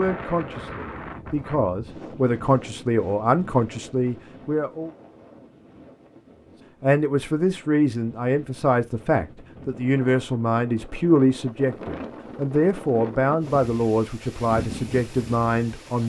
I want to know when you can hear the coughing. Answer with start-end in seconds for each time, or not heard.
not heard.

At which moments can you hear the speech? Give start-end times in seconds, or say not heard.
0.0-4.9, 6.8-16.0.